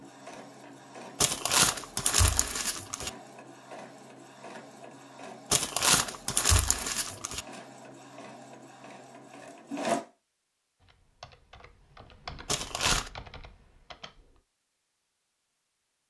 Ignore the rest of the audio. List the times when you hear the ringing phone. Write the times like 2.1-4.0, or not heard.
not heard.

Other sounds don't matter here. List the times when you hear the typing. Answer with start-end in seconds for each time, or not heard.
10.8-14.4.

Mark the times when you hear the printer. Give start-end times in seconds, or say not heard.
0.0-10.0.